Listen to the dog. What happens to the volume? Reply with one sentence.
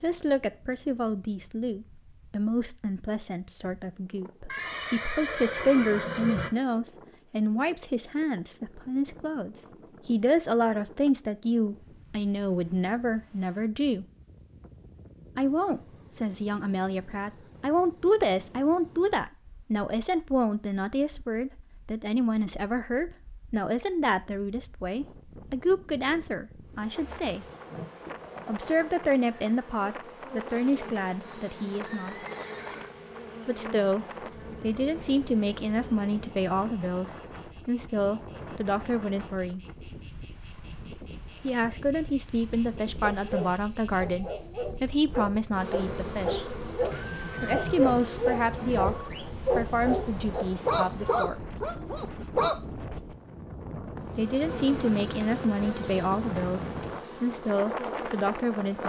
The loudness of the dog goes up.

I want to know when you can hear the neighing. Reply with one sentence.
You can hear the neighing from 4.5 to 6.5 s, from 31.2 to 32.9 s and from 46.9 to 48.9 s.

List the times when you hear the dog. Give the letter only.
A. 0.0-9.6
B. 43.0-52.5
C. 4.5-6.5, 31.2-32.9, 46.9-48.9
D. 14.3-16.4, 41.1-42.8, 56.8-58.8
B.